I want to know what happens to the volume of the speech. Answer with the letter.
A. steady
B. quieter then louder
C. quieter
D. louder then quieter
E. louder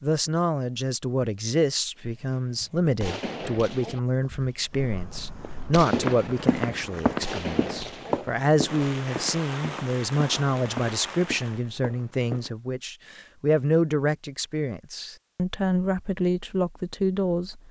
A.